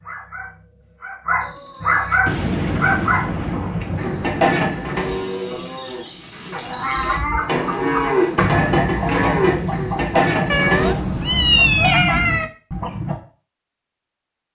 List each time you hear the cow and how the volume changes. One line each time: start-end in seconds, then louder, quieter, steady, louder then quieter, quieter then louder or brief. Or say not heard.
4.0-10.9 quieter then louder.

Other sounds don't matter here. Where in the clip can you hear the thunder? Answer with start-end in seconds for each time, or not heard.
2.2-4.8.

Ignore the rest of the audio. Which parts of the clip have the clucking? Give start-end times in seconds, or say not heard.
7.0-13.2.